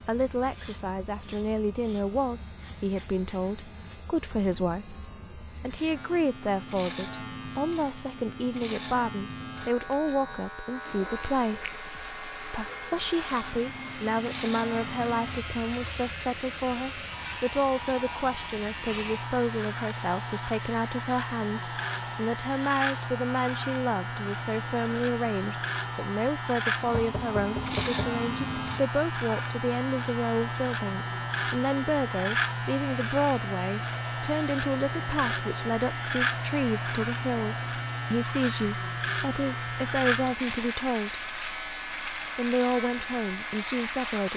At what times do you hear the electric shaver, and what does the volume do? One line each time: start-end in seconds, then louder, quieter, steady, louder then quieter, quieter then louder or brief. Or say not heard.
0.0-44.3 louder.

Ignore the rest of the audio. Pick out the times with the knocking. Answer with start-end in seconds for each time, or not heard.
26.9-28.1.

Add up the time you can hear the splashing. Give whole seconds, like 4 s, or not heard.
not heard.